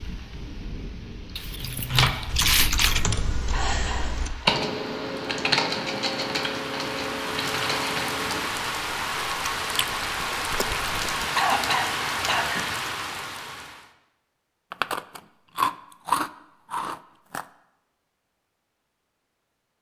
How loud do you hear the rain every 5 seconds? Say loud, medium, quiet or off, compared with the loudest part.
quiet, loud, loud, off.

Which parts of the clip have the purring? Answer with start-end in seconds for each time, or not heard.
not heard.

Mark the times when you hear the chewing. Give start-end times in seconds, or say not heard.
1.4-3.0, 9.8-11.2, 14.7-17.4.